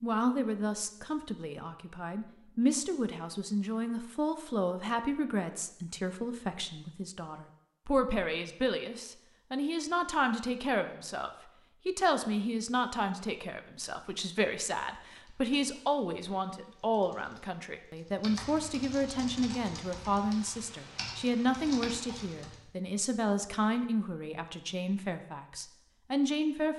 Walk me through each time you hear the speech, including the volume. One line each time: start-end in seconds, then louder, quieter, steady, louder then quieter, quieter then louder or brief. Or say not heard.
0.0-26.7 steady.